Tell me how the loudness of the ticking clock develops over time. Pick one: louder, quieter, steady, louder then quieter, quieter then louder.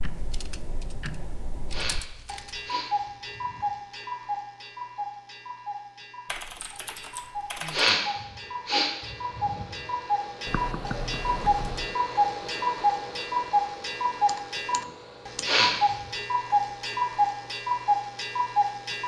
louder.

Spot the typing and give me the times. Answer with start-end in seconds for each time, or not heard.
0.0-2.7, 6.2-7.9, 10.4-12.0, 14.2-15.6.